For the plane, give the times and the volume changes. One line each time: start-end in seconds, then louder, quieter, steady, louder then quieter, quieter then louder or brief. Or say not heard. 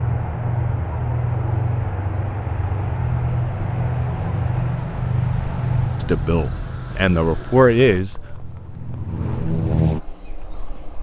0.0-10.9 quieter then louder.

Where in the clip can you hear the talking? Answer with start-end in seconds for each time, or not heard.
6.0-8.1.